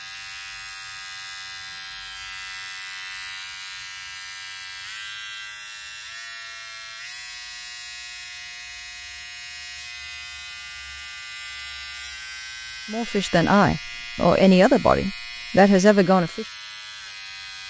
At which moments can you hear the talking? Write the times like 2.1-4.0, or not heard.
12.9-16.4.